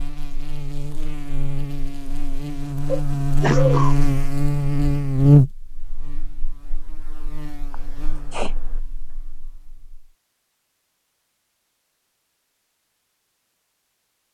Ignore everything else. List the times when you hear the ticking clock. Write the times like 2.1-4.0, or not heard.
not heard.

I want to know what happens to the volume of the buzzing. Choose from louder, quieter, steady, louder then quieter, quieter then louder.
louder then quieter.